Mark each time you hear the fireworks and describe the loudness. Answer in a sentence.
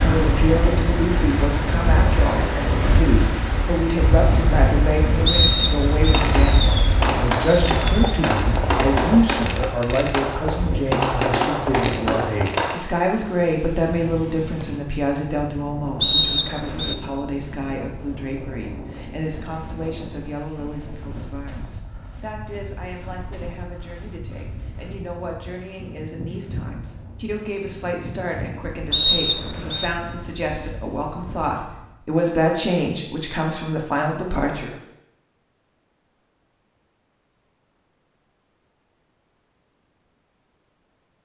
You can hear the fireworks from 6.0 to 12.8 s, at a steady volume.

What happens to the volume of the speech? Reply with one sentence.
The volume of the speech goes down, then up.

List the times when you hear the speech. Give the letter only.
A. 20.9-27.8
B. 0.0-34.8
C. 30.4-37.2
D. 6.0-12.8
B.